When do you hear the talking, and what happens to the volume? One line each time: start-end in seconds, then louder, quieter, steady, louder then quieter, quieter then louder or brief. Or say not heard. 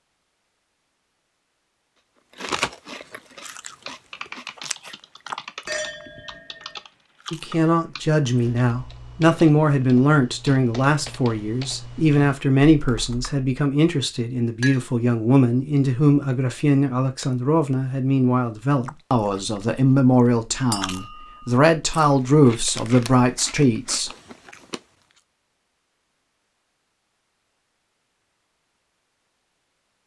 7.3-24.1 steady.